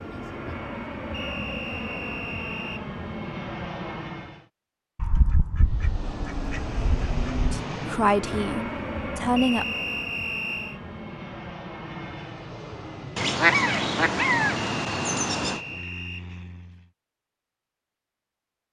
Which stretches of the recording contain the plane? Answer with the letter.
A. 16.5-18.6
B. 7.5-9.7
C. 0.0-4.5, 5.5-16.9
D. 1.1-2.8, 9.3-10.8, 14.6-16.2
C.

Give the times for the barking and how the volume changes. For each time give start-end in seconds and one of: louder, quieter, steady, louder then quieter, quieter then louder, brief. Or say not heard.
not heard.